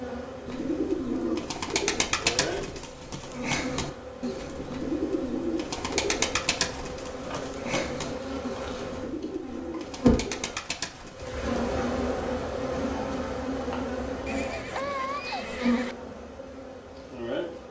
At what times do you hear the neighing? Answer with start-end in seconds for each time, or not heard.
14.2-15.9.